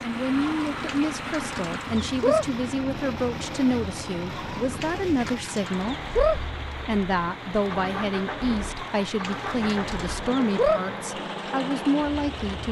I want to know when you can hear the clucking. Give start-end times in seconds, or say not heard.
0.4-2.5, 4.3-6.4, 8.8-10.8.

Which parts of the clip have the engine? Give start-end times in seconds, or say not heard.
0.0-12.6.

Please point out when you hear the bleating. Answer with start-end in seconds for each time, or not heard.
not heard.